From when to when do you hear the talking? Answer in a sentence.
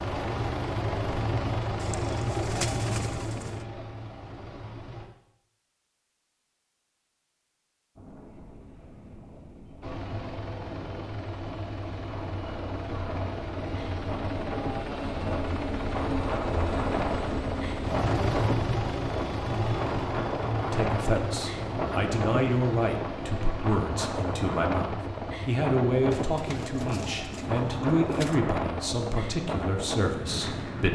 The talking can be heard from 20.6 to 30.9 s.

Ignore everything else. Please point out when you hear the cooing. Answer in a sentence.
You can hear the cooing from 1.8 to 3.6 s and from 26.1 to 28.4 s.